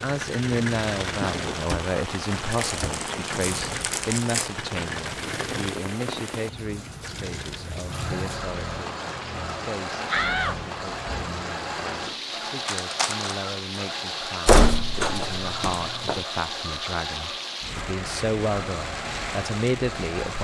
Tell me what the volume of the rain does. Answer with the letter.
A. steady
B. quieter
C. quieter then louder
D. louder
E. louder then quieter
A.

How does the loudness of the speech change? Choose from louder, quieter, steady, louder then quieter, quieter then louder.
quieter then louder.